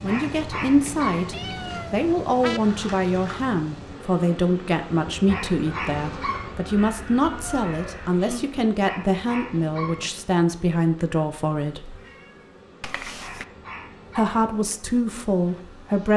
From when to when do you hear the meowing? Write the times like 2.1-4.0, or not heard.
1.3-2.6, 7.2-8.4, 12.8-13.4.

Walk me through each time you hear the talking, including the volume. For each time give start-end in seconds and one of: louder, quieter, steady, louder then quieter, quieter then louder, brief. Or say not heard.
0.0-11.9 steady
14.2-16.1 brief.